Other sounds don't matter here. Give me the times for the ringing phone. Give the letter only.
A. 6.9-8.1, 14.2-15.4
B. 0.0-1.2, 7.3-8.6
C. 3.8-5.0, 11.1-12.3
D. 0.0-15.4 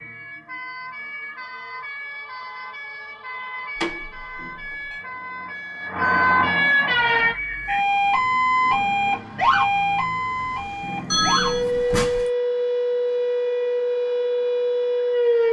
C.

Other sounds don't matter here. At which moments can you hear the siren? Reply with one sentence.
You can hear the siren from 0.0 to 15.4 s.